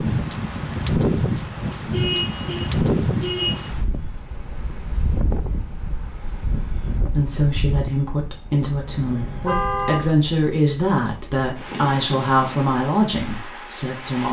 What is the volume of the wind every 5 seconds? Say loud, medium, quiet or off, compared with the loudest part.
loud, medium, medium.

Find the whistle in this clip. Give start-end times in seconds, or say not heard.
not heard.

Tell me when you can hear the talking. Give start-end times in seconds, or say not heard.
7.1-14.2.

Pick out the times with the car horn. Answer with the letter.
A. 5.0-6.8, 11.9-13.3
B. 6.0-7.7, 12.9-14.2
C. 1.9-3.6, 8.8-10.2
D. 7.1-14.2
C.